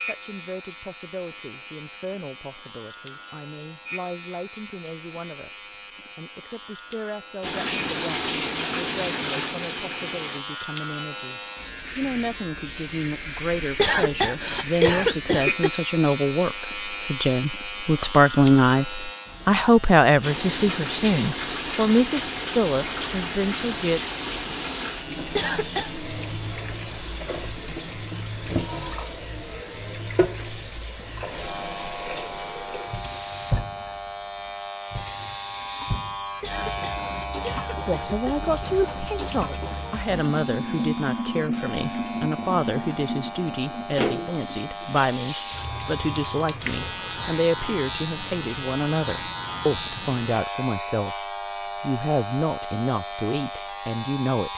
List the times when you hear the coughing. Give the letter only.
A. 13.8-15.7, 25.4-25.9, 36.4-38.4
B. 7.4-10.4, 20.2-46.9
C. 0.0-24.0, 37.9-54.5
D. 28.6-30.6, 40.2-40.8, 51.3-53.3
A.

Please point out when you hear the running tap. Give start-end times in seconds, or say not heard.
7.4-10.4, 20.2-46.9.